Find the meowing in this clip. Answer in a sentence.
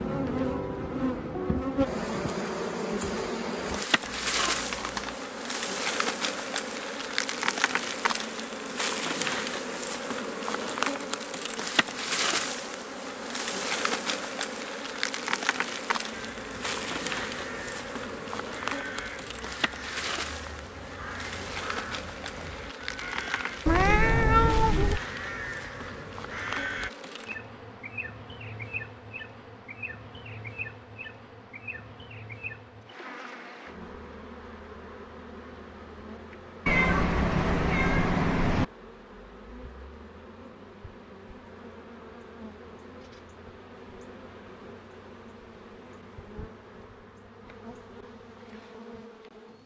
The meowing can be heard from 4.0 to 5.2 s, from 23.6 to 25.0 s and from 36.6 to 38.6 s.